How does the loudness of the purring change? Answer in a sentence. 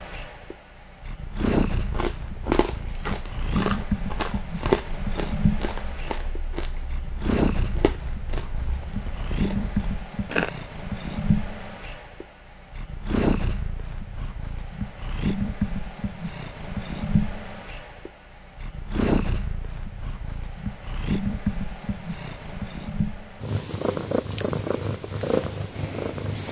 The loudness of the purring stays about the same.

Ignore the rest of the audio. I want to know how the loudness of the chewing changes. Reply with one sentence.
The loudness of the chewing goes down.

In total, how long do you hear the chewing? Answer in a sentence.
The chewing can be heard for 9 seconds in total.